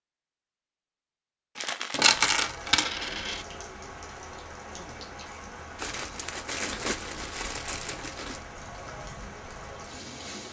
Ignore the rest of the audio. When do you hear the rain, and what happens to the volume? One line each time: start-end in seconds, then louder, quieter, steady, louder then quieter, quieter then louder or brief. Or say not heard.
2.1-10.4 steady.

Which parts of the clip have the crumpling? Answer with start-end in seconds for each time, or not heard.
1.6-2.4, 5.8-8.4.